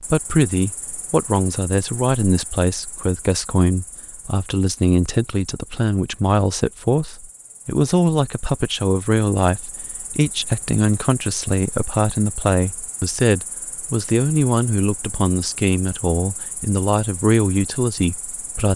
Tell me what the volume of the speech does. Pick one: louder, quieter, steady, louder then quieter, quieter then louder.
steady.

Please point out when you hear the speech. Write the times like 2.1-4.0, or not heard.
0.1-18.7.